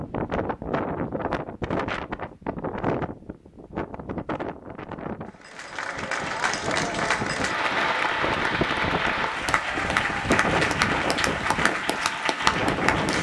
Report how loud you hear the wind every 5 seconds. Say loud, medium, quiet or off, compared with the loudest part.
loud, medium, loud.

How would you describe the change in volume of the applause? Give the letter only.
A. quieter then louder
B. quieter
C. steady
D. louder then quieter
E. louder
C.